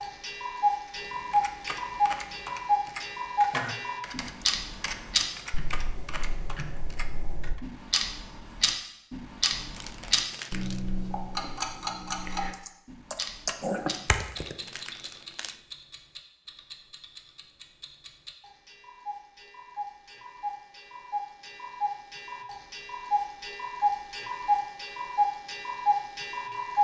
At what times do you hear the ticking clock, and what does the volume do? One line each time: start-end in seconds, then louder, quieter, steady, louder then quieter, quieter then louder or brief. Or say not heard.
0.0-26.8 quieter then louder.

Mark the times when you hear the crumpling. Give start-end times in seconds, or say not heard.
9.5-10.8, 13.8-15.6.